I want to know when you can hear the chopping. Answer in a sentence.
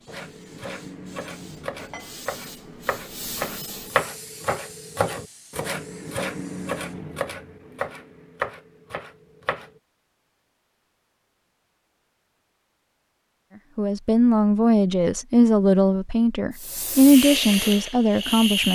You can hear the chopping from 0.1 to 9.8 s.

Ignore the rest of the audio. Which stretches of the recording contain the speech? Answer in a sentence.
You can hear the speech from 13.8 to 18.7 s.